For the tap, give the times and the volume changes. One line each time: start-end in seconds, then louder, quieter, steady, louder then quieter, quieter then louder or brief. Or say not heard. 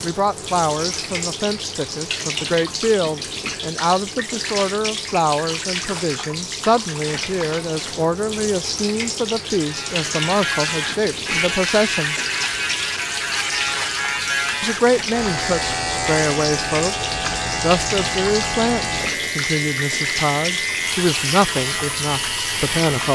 0.0-23.1 steady.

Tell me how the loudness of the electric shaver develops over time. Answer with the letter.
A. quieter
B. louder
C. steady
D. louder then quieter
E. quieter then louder
C.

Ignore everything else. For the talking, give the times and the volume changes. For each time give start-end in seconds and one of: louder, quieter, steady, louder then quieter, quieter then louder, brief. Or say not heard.
0.0-12.2 steady
14.6-23.1 steady.